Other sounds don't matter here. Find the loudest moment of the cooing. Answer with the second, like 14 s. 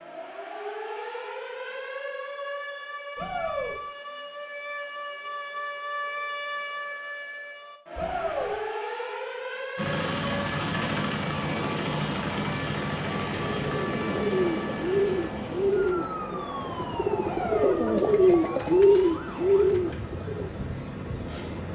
19 s.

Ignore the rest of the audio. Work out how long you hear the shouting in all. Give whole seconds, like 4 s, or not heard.
2 s.